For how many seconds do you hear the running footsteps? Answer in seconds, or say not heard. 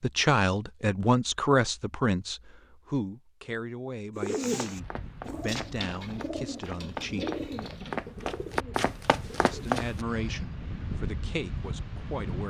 6 s.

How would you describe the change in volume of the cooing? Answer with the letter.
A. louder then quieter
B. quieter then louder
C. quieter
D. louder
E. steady
C.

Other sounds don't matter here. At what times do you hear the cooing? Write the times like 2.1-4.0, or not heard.
4.2-9.8.